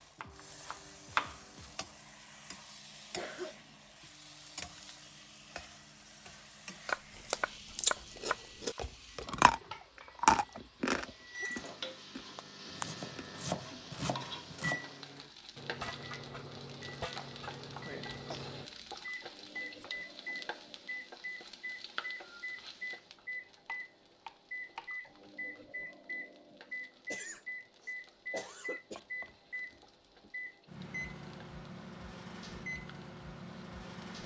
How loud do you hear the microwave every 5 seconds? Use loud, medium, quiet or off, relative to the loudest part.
quiet, quiet, loud, loud, loud, loud, loud.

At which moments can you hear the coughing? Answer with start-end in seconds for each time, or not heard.
3.1-3.8, 18.1-18.6, 27.1-29.0.